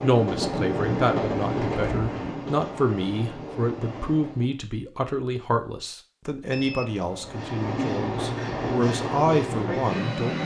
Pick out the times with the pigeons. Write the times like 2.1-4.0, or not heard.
0.3-2.3.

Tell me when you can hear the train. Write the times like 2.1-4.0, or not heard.
0.0-4.5, 7.2-10.4.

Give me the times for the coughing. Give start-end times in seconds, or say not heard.
not heard.